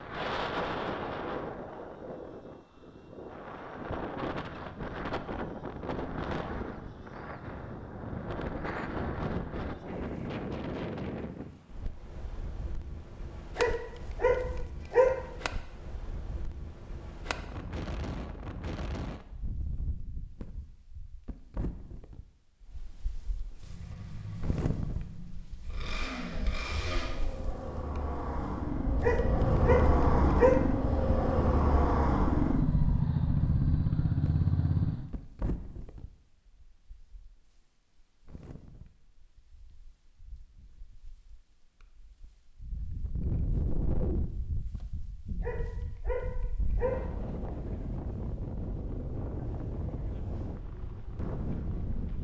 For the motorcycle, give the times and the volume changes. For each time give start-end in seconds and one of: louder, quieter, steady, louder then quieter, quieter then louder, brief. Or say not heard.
23.6-35.1 louder.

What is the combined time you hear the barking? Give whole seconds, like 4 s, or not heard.
5 s.